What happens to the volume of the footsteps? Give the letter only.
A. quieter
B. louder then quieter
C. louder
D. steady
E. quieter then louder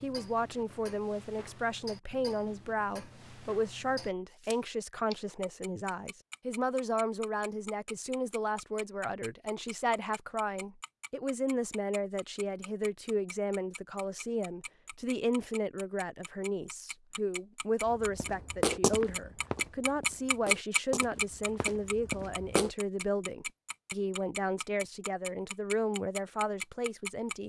E.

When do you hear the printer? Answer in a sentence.
You can't hear the printer here.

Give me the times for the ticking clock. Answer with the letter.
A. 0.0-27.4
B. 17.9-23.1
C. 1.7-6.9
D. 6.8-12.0
A.